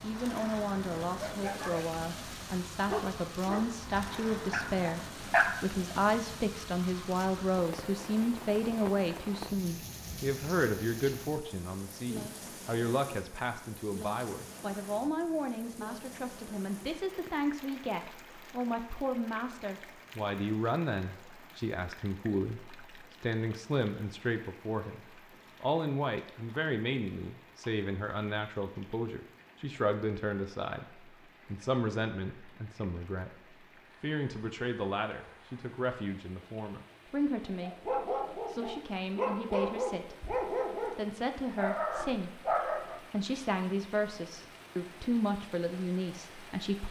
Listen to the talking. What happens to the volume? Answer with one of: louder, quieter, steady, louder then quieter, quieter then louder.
steady.